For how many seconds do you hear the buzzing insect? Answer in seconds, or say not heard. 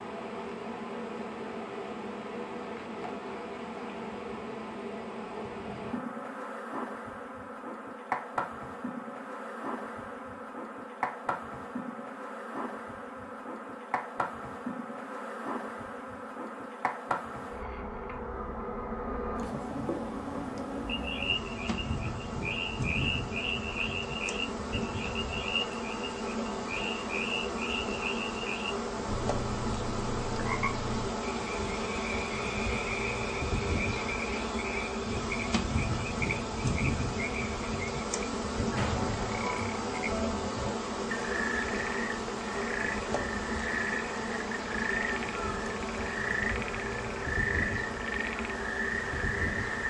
50 s.